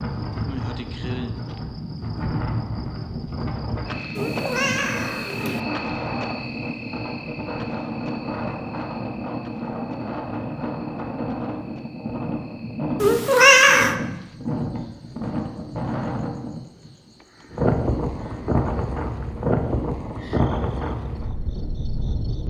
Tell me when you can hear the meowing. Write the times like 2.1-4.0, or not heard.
4.2-5.6, 13.0-13.9.